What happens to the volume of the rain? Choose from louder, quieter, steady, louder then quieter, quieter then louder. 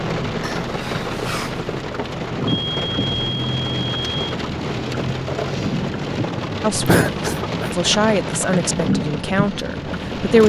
steady.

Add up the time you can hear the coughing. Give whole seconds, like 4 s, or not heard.
2 s.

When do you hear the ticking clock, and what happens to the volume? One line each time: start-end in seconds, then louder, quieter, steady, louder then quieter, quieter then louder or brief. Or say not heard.
not heard.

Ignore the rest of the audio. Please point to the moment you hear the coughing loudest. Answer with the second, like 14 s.
7 s.